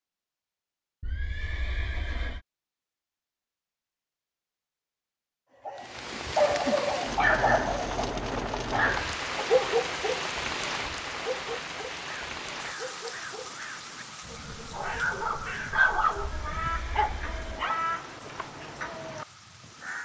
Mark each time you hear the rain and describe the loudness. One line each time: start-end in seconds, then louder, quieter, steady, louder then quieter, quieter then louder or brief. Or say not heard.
5.8-20.0 quieter.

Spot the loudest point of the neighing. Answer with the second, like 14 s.
2 s.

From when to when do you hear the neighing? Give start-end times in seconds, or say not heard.
1.0-2.4, 16.2-17.7.